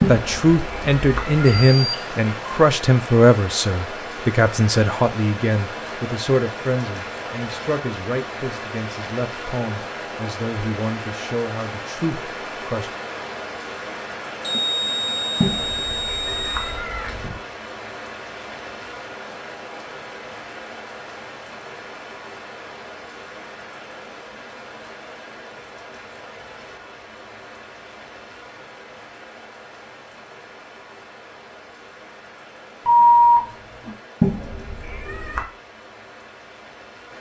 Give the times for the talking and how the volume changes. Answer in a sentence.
The talking can be heard from 0.1 to 12.9 s, getting quieter.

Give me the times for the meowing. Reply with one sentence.
The meowing can be heard from 0.0 to 1.8 s, from 15.4 to 17.4 s and from 34.2 to 35.5 s.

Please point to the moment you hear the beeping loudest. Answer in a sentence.
The volume of the beeping peaks at 33 seconds.